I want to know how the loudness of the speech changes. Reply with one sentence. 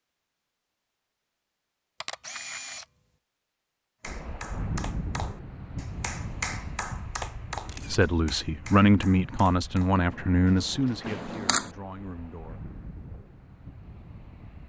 The volume of the speech goes down.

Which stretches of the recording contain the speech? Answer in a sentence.
You can hear the speech from 7.8 to 12.6 s.